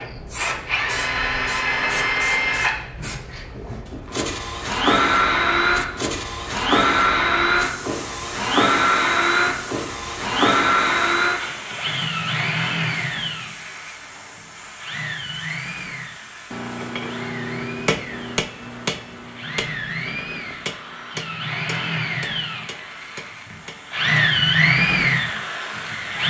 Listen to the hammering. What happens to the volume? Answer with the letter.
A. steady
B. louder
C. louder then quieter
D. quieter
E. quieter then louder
D.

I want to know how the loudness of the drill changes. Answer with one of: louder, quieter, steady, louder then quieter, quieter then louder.
quieter then louder.